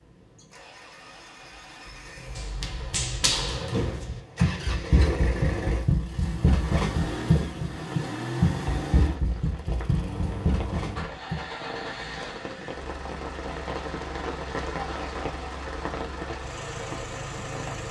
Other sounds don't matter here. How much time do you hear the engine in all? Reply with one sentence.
You can hear the engine for 18 seconds altogether.